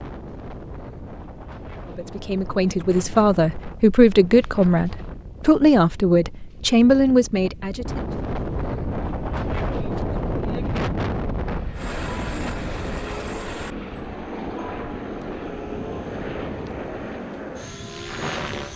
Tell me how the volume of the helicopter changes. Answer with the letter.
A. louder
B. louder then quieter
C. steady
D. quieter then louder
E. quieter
C.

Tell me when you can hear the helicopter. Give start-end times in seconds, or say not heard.
11.4-18.7.